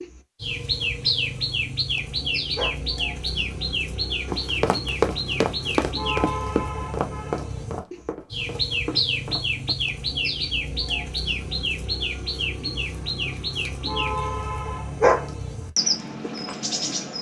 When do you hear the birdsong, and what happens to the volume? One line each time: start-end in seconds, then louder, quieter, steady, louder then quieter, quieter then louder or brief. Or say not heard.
0.0-17.1 steady.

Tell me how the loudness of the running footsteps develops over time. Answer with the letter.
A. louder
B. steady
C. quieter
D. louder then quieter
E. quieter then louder
C.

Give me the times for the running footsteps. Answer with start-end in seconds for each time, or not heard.
4.2-9.7.